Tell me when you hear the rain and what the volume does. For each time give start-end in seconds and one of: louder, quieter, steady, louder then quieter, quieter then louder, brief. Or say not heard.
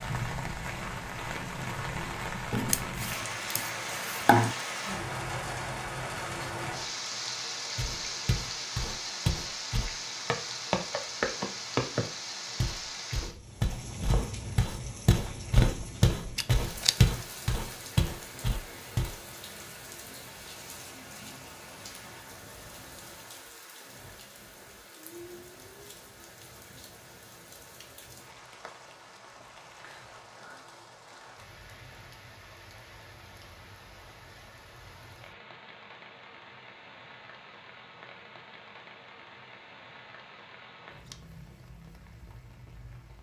0.0-43.1 quieter.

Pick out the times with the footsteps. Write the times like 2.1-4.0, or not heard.
7.8-19.1.